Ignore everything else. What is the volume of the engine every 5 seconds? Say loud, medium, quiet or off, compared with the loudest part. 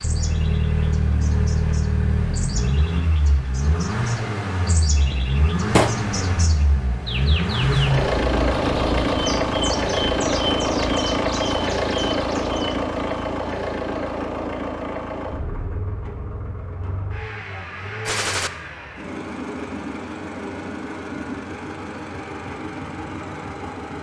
loud, loud, loud, medium, medium.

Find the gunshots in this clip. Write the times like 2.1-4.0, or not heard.
4.9-6.0, 18.1-18.5.